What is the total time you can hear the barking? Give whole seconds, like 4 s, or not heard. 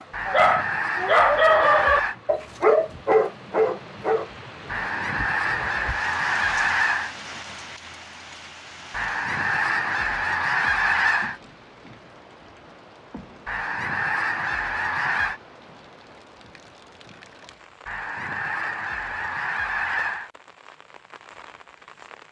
4 s.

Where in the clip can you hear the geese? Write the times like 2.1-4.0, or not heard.
0.1-2.1, 4.7-7.2, 8.9-11.4, 13.4-15.4, 17.9-20.3.